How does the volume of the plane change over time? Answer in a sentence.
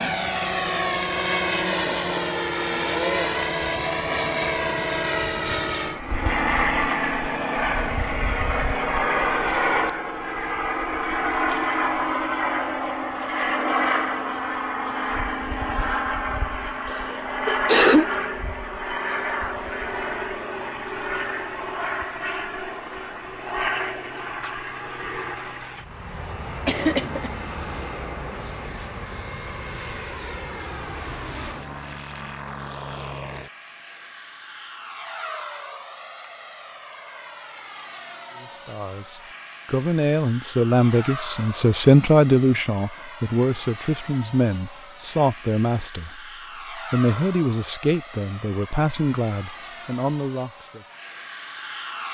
The volume of the plane goes down.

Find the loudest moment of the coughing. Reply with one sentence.
The loudest moment of the coughing is at 18 seconds.